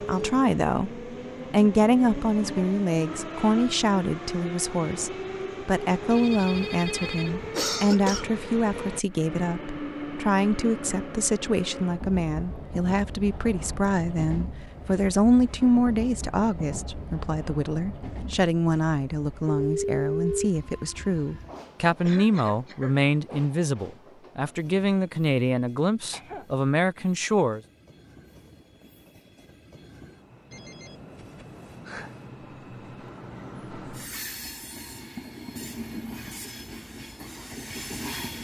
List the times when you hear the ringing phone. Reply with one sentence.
The ringing phone can be heard from 6.1 to 7.5 s, from 19.4 to 20.5 s and from 30.5 to 32.2 s.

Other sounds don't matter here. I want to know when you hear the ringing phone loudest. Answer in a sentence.
The volume of the ringing phone peaks at 20 seconds.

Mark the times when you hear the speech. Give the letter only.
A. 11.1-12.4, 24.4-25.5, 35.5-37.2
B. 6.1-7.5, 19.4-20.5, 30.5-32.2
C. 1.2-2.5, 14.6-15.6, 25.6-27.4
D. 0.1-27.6
D.